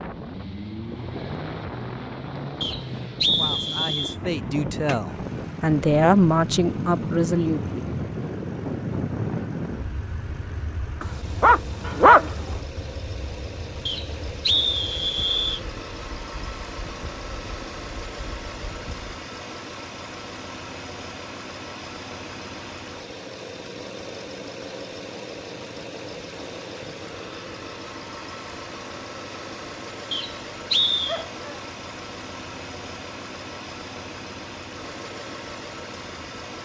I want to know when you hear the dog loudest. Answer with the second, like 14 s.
12 s.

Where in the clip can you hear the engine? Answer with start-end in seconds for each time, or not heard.
0.0-36.5.